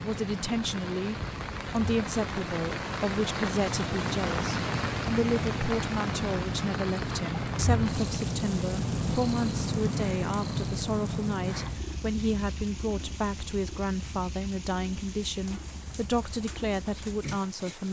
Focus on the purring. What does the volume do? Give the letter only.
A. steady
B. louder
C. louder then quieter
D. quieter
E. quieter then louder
C.